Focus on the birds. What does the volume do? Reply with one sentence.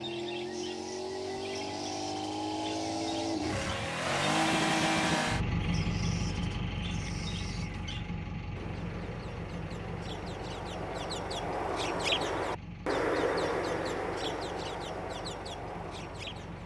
The volume of the birds goes up, then down.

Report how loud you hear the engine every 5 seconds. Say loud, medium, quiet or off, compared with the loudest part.
loud, loud, quiet, quiet.